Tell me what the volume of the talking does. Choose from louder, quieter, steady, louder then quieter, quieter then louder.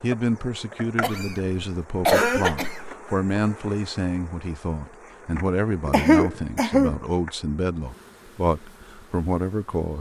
steady.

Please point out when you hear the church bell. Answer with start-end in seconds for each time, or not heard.
not heard.